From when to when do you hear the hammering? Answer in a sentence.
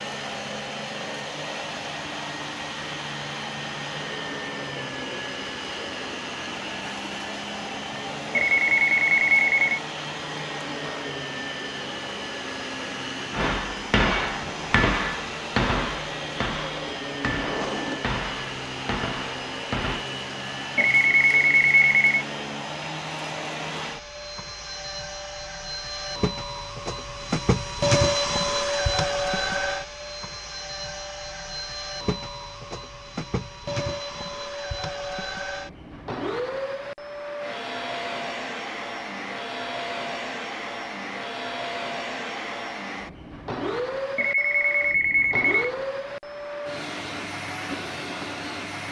The hammering can be heard from 13.3 to 20.1 s.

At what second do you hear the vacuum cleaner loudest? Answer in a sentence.
The loudest moment of the vacuum cleaner is at 28 seconds.